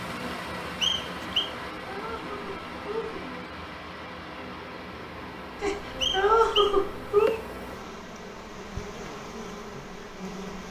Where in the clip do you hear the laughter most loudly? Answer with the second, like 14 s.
6 s.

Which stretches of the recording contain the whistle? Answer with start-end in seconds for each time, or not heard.
0.8-1.5, 6.0-7.4.